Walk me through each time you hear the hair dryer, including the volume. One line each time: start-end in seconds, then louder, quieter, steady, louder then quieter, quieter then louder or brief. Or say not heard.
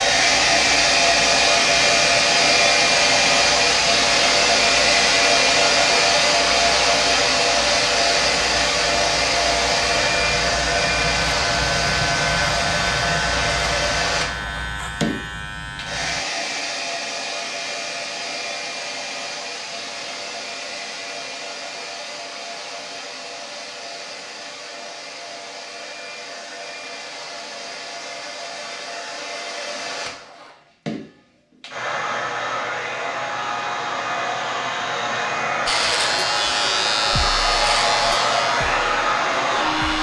0.0-39.9 quieter then louder.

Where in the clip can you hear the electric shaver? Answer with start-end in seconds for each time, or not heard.
0.0-16.2, 35.6-39.9.